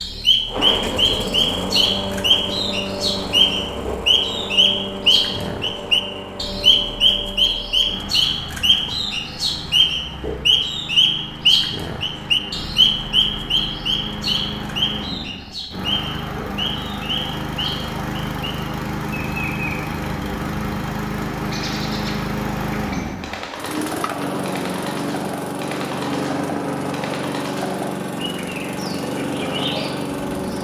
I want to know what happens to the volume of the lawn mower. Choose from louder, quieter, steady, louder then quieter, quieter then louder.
quieter then louder.